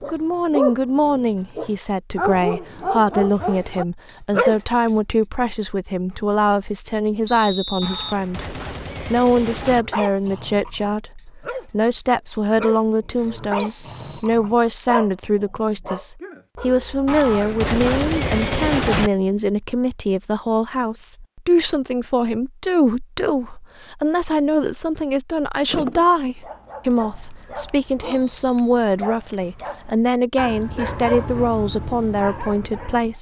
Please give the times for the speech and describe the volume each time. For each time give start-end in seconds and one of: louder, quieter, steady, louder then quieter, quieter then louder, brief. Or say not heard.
0.1-33.1 steady.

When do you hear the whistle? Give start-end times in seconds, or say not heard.
7.2-8.2, 13.6-14.3, 28.0-28.8.